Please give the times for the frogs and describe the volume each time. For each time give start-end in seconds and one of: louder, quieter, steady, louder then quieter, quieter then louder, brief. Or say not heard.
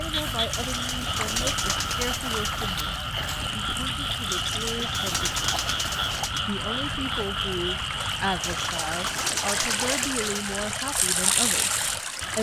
0.0-12.3 quieter.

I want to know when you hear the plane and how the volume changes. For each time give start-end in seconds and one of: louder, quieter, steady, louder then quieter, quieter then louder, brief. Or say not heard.
not heard.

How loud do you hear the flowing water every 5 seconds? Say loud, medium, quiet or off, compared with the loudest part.
quiet, medium, loud.